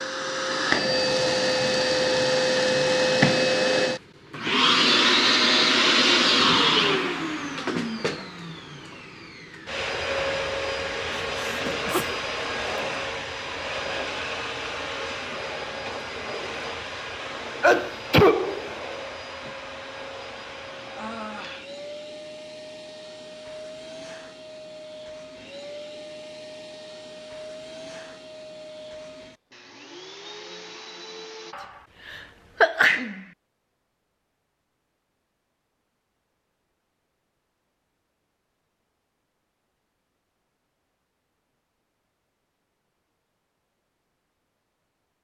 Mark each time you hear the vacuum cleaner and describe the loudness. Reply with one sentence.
The vacuum cleaner can be heard from 0.0 to 31.6 s, getting quieter.